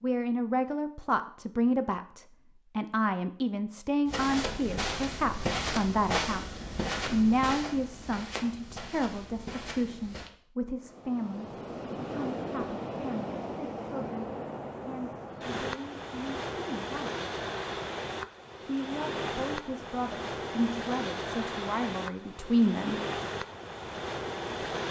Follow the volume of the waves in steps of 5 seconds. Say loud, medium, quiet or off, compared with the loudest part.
off, off, loud, loud, loud.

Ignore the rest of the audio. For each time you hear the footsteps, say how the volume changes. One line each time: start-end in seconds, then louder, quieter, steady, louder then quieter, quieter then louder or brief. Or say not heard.
4.0-10.3 quieter.